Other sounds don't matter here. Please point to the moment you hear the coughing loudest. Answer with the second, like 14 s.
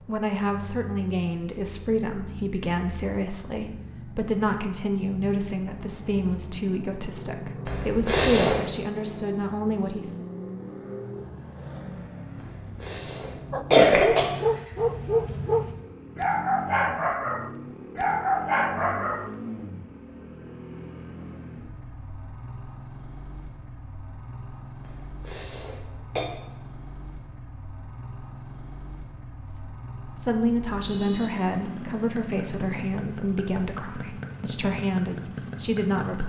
14 s.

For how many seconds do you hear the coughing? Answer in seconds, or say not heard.
4 s.